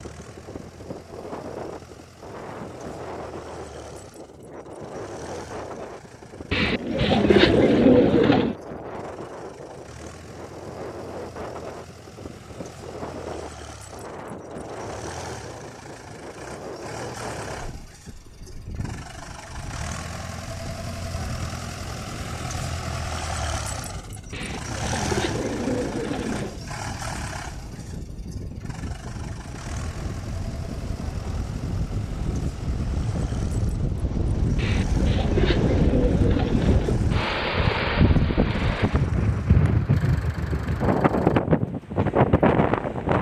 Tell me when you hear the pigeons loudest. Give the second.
8 s.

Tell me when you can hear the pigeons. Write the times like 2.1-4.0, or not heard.
6.5-8.6, 24.3-26.6, 34.5-37.0.